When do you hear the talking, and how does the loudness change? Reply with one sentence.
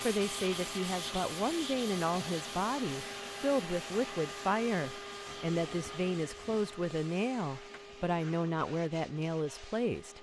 You can hear the talking from 0.0 to 10.1 s, at a steady volume.